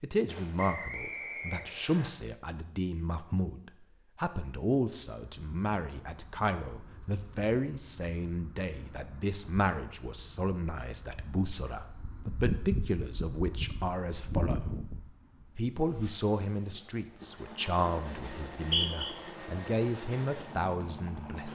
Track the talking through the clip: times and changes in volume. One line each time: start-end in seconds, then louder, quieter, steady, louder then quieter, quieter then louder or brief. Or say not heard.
0.0-14.8 steady
15.6-21.5 quieter then louder.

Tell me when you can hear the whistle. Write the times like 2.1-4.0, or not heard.
0.6-2.1, 18.6-19.1.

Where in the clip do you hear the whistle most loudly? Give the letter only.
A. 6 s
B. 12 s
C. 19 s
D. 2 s
C.